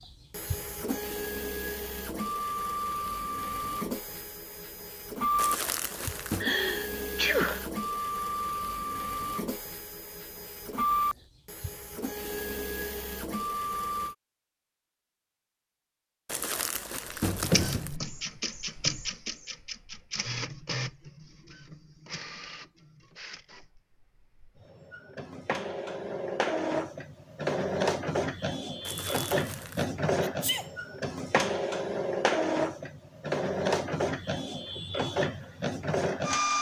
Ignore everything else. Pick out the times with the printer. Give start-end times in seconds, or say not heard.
0.0-14.2, 17.1-36.5.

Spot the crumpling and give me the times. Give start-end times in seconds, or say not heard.
5.3-6.5, 16.2-18.0, 28.9-29.9.